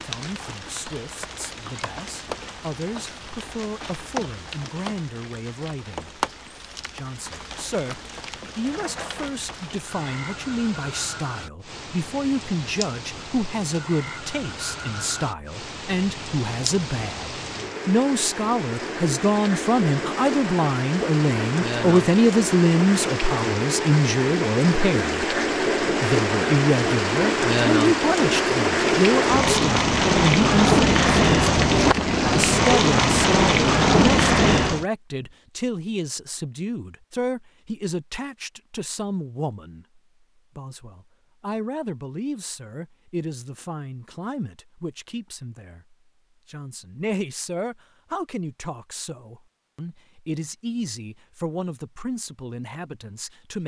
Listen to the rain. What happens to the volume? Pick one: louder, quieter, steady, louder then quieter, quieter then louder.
louder.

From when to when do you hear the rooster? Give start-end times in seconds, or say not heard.
not heard.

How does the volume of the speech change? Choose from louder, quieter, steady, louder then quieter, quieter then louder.
louder then quieter.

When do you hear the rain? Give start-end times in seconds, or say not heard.
0.0-34.9.